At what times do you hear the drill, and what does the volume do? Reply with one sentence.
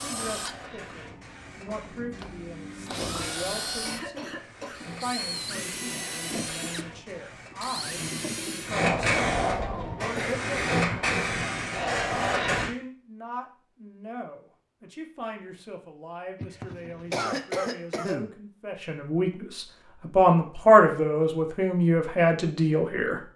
You can hear the drill from 0.0 to 8.8 s, getting louder.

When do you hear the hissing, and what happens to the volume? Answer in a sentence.
You can hear the hissing from 0.0 to 12.7 s, getting louder.